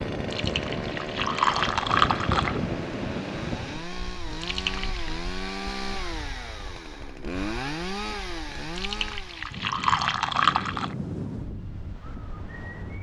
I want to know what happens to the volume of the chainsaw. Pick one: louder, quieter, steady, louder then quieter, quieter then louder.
steady.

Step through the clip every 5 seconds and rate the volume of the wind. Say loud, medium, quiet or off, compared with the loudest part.
loud, quiet, loud.